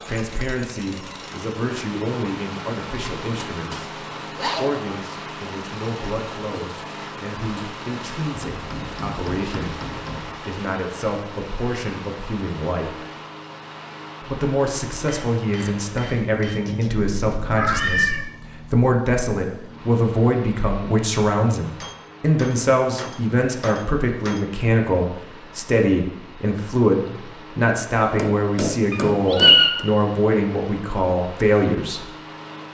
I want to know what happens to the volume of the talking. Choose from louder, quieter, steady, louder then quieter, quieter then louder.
louder.